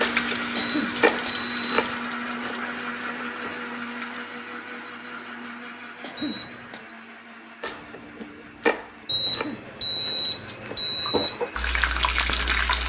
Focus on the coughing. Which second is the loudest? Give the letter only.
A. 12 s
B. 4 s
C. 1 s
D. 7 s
C.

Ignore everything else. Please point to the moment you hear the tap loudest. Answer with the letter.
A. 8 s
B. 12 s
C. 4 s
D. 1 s
B.